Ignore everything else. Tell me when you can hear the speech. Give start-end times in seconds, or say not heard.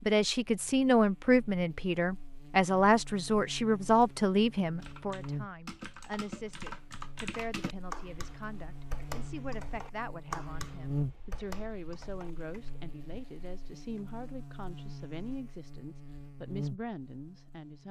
0.1-17.8.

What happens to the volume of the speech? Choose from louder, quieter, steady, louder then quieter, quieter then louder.
quieter.